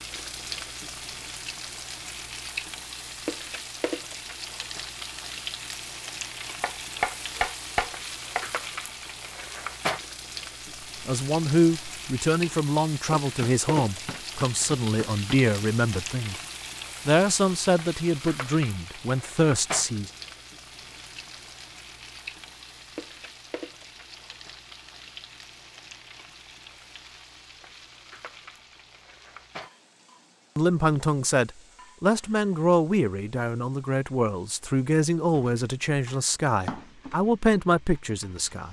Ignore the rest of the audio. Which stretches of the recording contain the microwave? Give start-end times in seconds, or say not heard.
not heard.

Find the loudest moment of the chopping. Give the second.
7 s.